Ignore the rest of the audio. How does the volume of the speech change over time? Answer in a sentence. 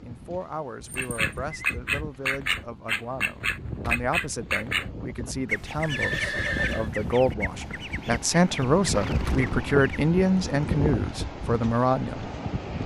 The loudness of the speech goes up.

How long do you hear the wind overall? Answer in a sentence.
You can hear the wind for 13 seconds altogether.